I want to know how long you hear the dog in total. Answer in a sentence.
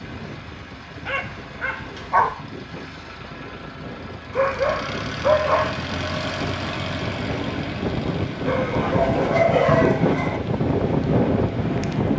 The dog can be heard for 5 seconds in total.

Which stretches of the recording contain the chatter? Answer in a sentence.
You can't hear the chatter here.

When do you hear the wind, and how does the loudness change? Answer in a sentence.
The wind can be heard from 0.0 to 12.1 s, getting louder.